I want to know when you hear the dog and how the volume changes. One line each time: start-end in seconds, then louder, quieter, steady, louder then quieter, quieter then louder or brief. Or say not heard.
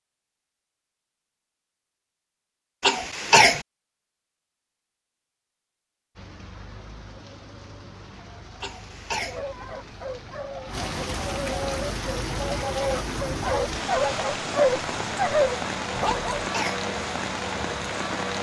9.2-16.4 louder.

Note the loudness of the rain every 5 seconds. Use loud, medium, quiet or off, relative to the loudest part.
off, quiet, loud, loud.